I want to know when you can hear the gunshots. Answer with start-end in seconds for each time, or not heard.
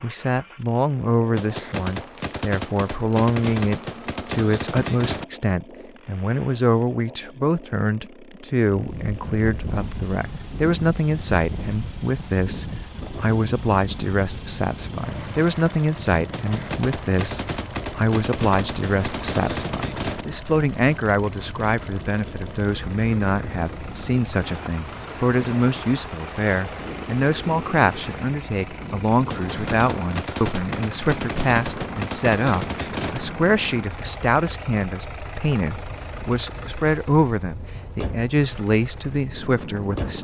1.4-5.2, 16.3-20.2, 29.2-33.2.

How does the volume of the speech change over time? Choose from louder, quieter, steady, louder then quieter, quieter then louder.
steady.